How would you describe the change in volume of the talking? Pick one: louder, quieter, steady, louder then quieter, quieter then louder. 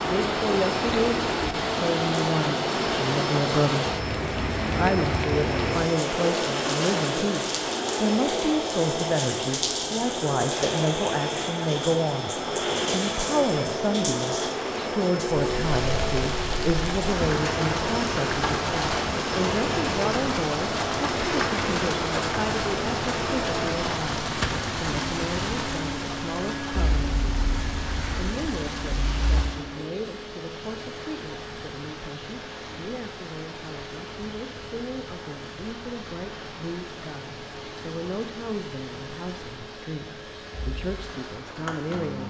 quieter.